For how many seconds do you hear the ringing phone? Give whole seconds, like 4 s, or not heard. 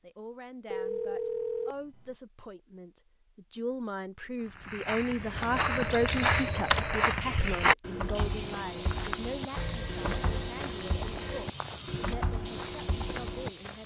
5 s.